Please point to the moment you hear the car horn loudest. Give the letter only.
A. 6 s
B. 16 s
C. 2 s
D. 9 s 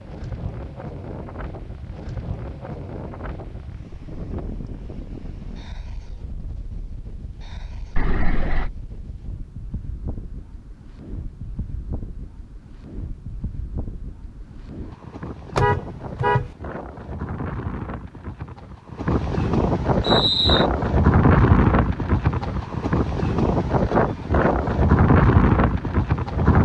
B.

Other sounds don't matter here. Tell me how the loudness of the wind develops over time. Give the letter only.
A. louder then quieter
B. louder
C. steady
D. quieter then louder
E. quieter
D.